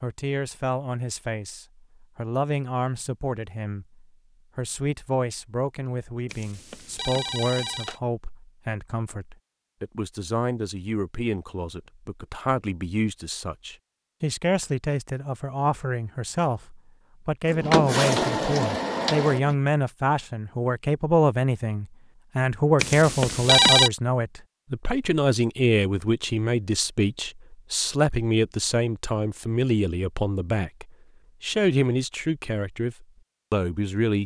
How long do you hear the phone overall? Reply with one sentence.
You can hear the phone for 3 seconds altogether.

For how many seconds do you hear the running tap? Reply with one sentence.
The running tap can be heard for 2 seconds in total.